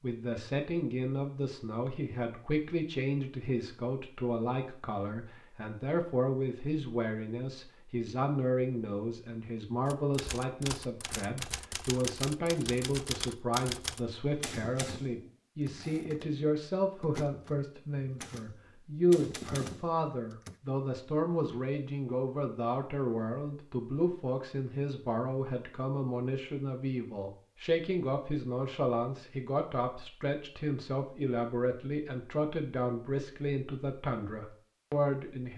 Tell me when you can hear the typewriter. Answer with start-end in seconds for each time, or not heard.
9.8-20.6.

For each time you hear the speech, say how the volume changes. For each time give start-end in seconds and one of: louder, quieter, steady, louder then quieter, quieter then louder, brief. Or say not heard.
0.0-35.5 steady.